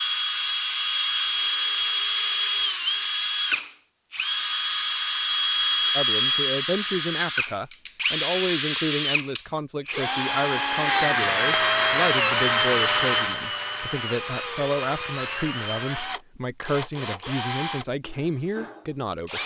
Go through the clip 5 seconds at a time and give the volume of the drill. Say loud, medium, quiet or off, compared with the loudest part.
loud, loud, loud, medium.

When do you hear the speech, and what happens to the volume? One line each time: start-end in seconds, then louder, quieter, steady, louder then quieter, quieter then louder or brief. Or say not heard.
6.0-19.4 steady.